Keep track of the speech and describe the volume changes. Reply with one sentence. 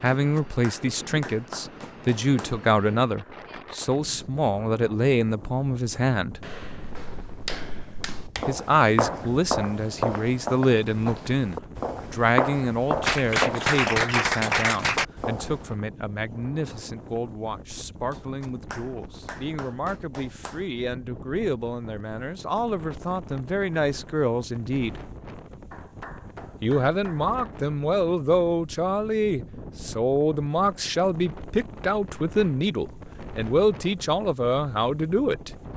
The volume of the speech goes down, then up.